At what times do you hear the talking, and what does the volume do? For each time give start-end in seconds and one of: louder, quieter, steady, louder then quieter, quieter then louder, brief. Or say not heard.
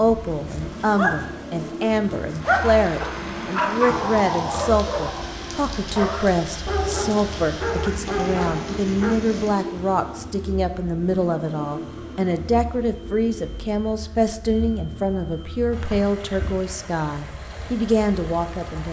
0.0-18.8 steady.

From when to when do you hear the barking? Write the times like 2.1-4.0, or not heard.
0.3-9.2.